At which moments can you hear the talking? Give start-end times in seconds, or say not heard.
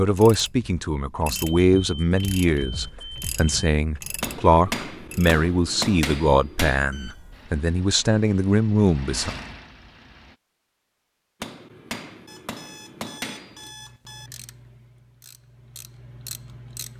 0.0-9.3.